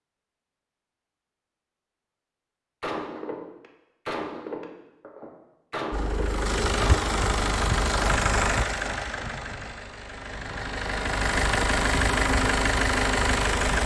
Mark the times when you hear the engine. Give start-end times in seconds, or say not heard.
5.9-13.8.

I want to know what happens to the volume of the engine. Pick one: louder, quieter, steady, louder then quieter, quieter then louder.
quieter then louder.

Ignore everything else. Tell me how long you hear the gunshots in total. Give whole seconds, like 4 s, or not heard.
4 s.